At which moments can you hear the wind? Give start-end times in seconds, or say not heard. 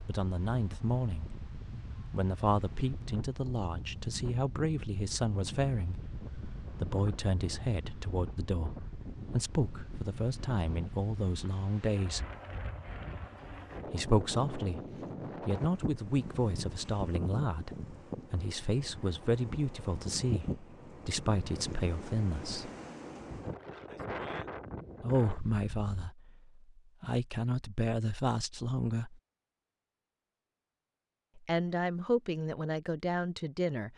0.0-26.1.